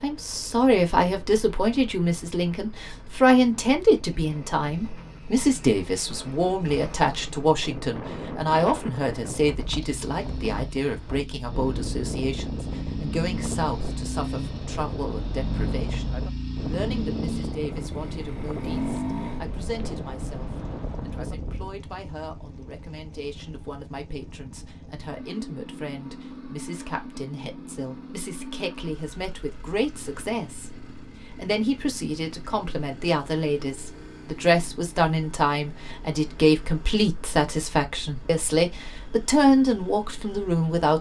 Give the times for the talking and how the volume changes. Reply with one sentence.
You can hear the talking from 0.0 to 40.9 s, getting quieter then louder.